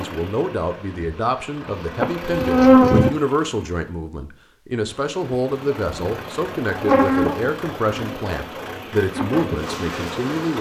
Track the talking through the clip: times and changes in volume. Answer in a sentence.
You can hear the talking from 0.0 to 10.5 s, at a steady volume.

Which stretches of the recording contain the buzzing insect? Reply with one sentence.
You can hear the buzzing insect from 0.0 to 3.1 s and from 5.2 to 10.5 s.